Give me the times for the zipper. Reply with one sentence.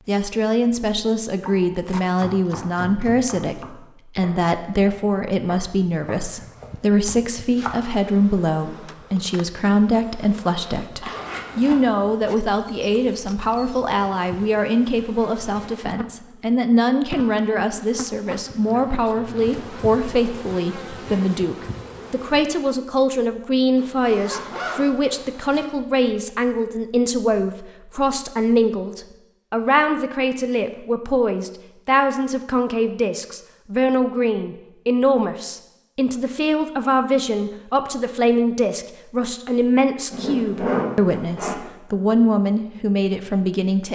You can hear the zipper from 11.0 to 11.8 s, from 23.8 to 25.6 s and from 40.1 to 41.5 s.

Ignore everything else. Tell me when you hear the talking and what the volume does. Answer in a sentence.
You can hear the talking from 0.1 to 43.9 s, at a steady volume.